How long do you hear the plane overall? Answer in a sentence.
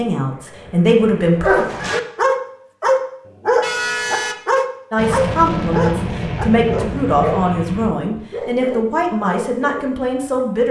You can hear the plane for 7 seconds altogether.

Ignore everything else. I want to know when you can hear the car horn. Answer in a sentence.
You can hear the car horn from 3.6 to 4.7 s.